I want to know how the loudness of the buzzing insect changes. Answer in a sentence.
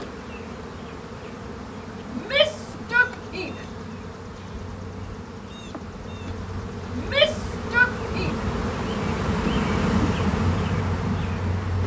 The loudness of the buzzing insect goes up.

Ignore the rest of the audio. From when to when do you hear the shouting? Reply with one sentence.
The shouting can be heard from 2.1 to 3.6 s and from 6.9 to 8.3 s.